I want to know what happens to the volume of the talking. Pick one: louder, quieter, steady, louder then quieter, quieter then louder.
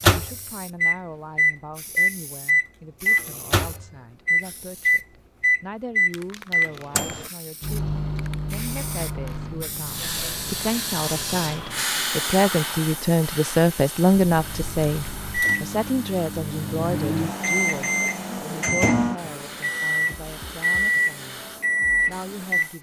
louder then quieter.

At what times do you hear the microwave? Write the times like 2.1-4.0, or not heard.
0.0-10.7, 14.1-22.7.